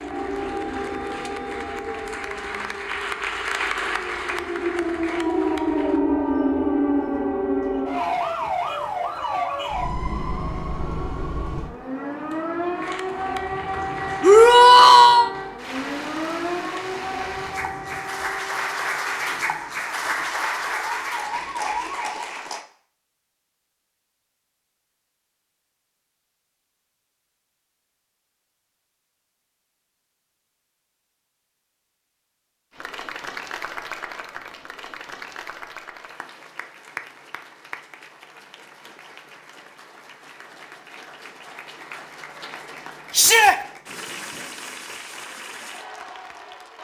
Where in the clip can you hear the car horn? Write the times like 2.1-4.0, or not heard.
not heard.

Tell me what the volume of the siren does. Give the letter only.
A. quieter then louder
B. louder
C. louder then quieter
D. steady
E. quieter
C.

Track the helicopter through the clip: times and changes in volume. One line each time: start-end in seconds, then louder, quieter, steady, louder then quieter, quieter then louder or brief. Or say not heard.
not heard.